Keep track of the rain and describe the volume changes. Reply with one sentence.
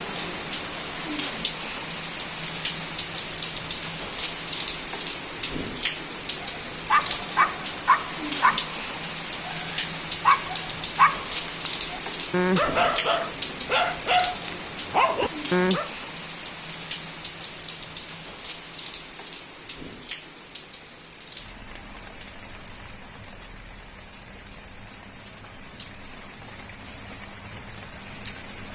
The volume of the rain goes down.